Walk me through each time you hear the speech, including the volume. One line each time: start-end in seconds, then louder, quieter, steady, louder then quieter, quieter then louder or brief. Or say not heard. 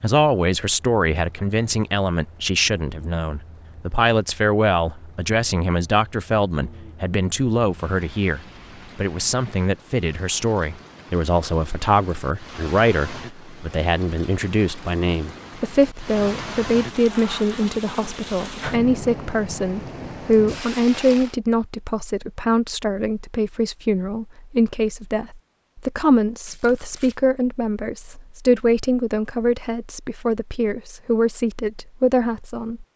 0.0-32.9 steady.